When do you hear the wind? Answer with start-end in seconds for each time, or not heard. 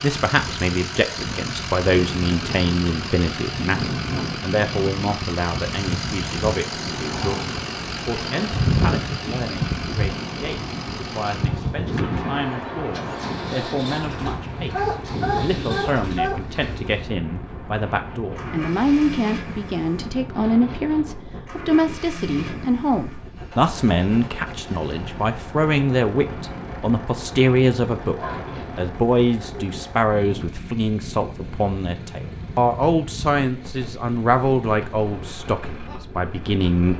0.2-36.9.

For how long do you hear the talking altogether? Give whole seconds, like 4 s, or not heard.
37 s.